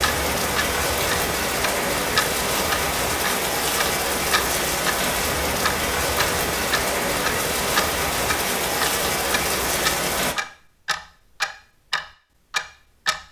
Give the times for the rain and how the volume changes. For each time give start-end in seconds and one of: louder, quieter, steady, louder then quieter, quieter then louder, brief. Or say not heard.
0.0-10.3 steady.